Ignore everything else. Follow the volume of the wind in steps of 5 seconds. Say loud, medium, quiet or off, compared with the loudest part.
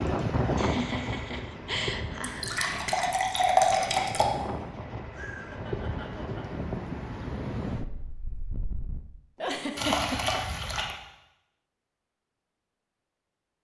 loud, loud, off.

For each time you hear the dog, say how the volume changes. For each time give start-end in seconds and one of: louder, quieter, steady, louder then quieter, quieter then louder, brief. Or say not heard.
not heard.